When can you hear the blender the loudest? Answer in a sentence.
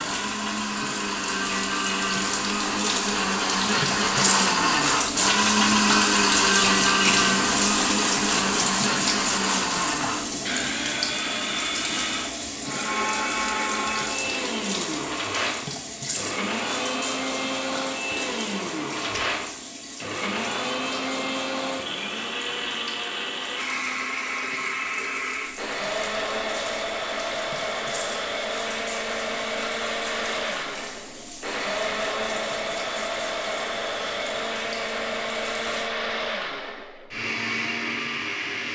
The volume of the blender peaks at 6 seconds.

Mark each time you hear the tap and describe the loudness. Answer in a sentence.
The tap can be heard from 0.0 to 35.9 s, getting quieter.